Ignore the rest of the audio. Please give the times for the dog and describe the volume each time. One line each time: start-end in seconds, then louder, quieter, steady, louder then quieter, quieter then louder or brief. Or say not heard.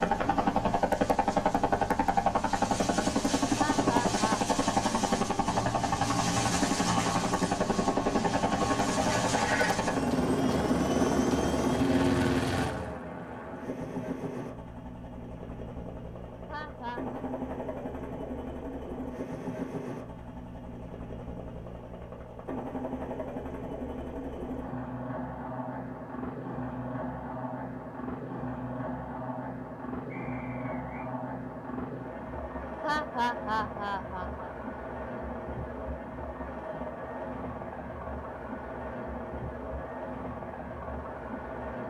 not heard.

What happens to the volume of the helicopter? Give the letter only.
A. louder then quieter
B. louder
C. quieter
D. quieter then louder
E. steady
C.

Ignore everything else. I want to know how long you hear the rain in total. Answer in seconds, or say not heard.
not heard.